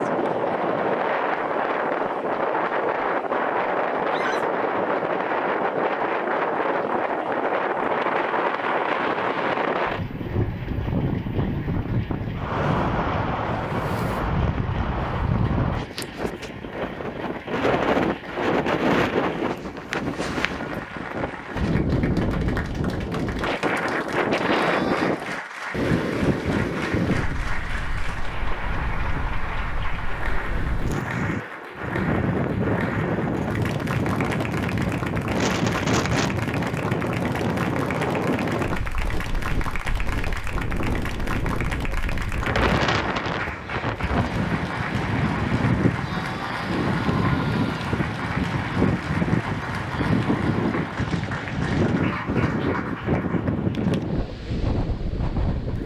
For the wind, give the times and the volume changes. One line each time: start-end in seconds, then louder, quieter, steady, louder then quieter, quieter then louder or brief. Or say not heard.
0.0-55.8 steady.